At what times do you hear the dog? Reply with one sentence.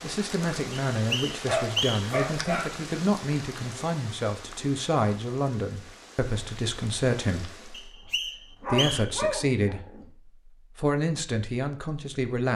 You can hear the dog from 1.4 to 2.8 s and from 8.6 to 10.1 s.